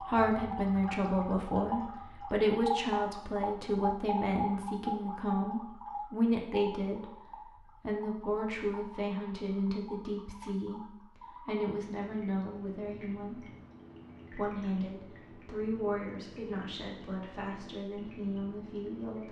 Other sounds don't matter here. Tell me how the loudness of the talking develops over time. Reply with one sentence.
The loudness of the talking goes down.